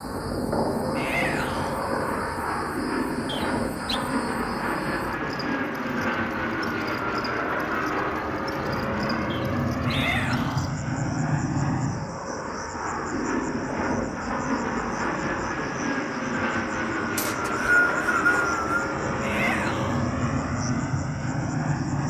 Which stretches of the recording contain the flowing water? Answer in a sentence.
You can't hear the flowing water here.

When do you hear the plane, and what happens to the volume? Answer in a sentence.
You can hear the plane from 0.0 to 22.0 s, at a steady volume.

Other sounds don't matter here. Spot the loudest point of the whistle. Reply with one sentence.
The volume of the whistle peaks at 18 seconds.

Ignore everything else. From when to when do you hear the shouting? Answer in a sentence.
The shouting can be heard from 0.9 to 1.8 s, from 9.8 to 10.7 s and from 19.2 to 20.1 s.